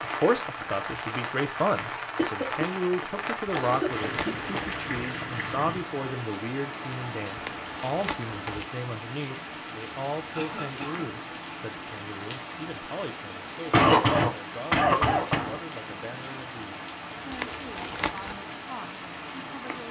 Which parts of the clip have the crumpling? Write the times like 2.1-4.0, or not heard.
3.5-5.0, 7.3-8.7, 17.3-18.4.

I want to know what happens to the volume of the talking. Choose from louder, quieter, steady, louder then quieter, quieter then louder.
quieter.